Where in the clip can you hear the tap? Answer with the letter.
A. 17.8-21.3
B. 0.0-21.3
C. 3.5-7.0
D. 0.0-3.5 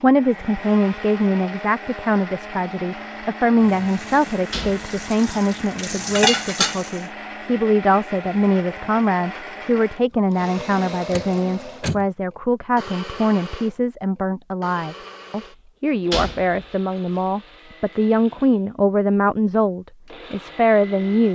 C.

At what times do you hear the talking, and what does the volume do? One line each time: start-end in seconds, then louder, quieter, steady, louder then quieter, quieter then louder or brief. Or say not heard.
0.0-21.3 steady.